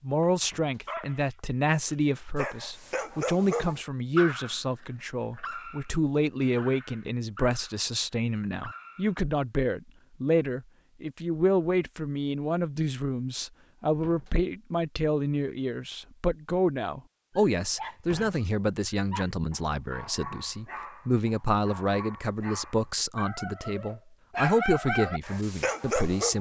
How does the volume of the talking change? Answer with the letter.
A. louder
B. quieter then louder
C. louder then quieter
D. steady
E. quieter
D.